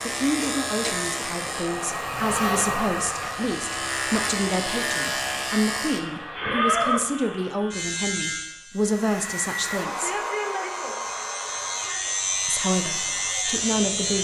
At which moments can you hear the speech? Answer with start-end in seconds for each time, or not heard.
0.0-10.2, 12.4-14.1.